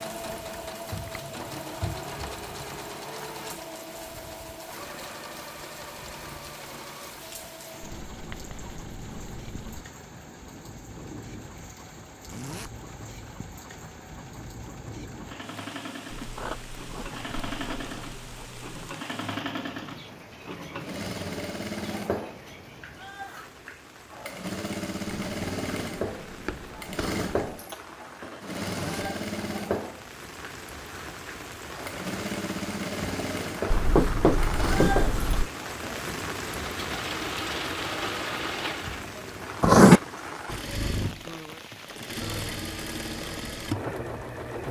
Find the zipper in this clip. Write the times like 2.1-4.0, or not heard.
12.2-12.8, 28.6-29.1.